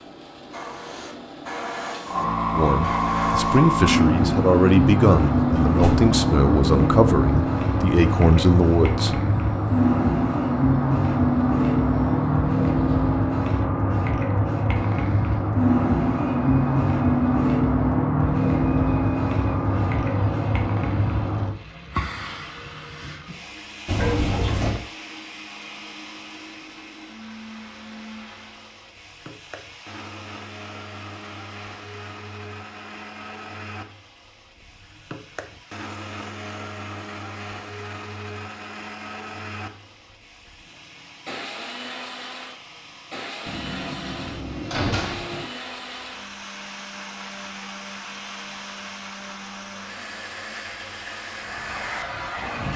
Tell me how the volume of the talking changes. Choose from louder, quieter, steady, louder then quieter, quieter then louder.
steady.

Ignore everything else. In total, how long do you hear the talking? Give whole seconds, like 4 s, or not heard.
7 s.